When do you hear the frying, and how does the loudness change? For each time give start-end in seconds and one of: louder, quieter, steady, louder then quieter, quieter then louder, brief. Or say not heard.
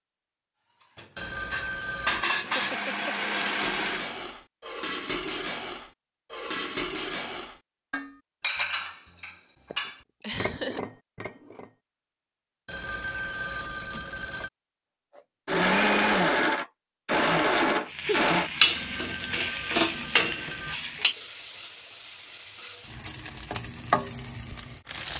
17.9-25.1 quieter then louder.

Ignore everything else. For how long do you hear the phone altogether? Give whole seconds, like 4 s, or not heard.
5 s.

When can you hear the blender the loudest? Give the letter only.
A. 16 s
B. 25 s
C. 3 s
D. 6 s
A.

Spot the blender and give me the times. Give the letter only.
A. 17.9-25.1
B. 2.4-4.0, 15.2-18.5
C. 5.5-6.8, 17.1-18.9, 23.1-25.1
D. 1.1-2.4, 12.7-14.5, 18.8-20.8
B.